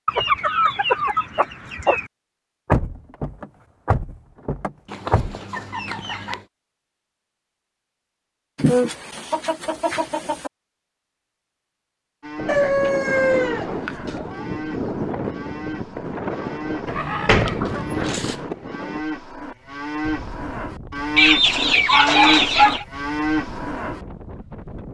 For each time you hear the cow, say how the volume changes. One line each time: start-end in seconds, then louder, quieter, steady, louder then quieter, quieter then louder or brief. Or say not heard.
12.2-24.1 louder.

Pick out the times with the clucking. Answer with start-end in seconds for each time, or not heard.
0.1-2.0, 4.9-6.4, 8.6-10.5, 12.4-14.4, 16.9-18.4, 21.1-22.9.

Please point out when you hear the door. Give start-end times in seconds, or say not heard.
2.6-5.3, 16.9-18.1.